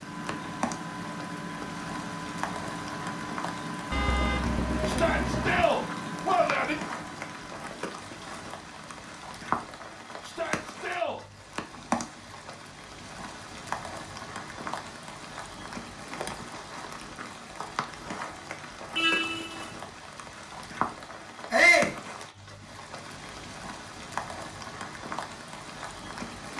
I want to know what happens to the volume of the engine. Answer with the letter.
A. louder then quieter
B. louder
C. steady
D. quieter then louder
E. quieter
E.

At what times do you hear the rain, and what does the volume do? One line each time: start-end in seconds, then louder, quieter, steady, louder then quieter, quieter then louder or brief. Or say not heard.
0.0-26.5 steady.